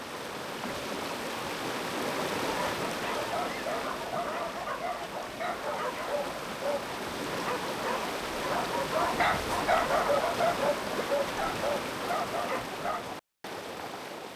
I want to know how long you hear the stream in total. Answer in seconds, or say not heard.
14 s.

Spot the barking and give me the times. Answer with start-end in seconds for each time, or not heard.
2.5-13.2.